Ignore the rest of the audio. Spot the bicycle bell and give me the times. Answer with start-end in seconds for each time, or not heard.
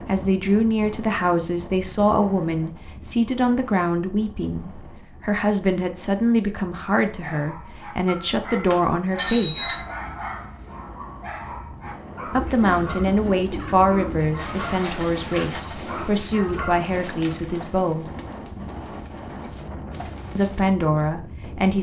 8.5-9.8.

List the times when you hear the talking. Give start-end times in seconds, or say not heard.
0.0-9.8, 12.2-18.1, 20.4-21.7.